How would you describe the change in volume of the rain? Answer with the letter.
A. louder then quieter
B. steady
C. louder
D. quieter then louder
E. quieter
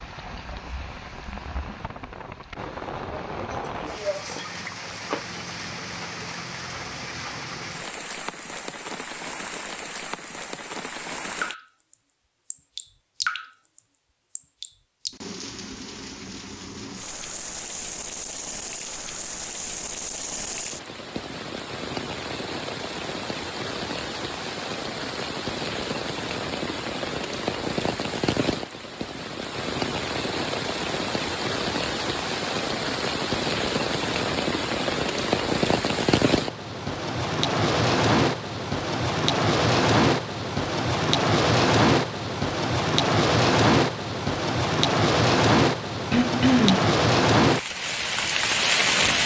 C.